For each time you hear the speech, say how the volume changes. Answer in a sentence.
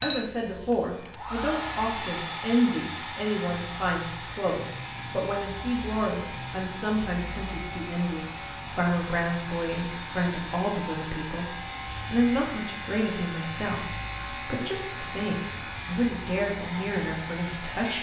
The speech can be heard from 0.0 to 17.9 s, at a steady volume.